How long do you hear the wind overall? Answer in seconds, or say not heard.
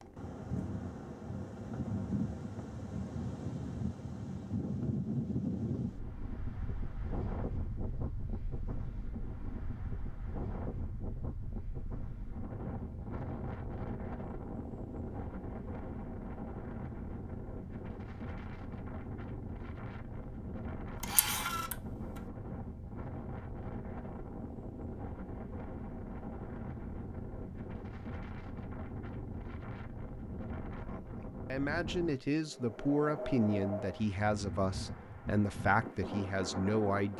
37 s.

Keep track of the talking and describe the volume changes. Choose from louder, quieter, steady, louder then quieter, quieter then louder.
steady.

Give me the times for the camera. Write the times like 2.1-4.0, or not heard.
21.0-21.8.